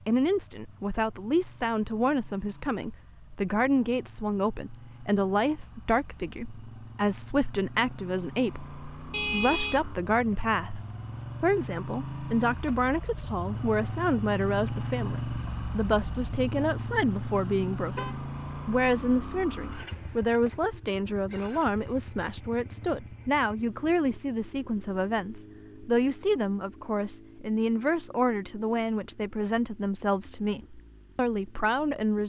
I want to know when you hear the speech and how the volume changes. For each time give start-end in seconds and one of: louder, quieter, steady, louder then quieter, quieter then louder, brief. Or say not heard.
0.1-32.2 steady.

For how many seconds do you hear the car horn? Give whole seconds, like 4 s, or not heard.
2 s.